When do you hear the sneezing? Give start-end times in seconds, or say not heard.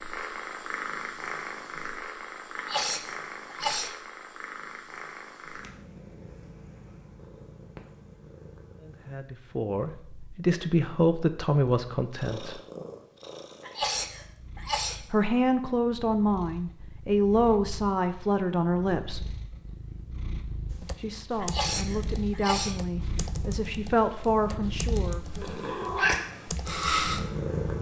2.5-4.0, 13.6-15.0, 21.4-22.8.